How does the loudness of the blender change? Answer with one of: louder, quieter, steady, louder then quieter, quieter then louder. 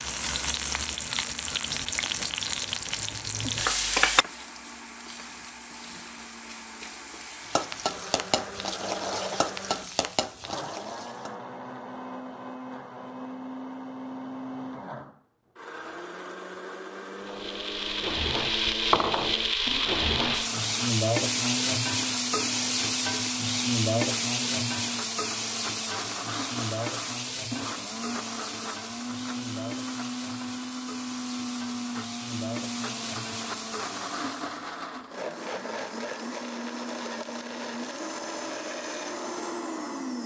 louder.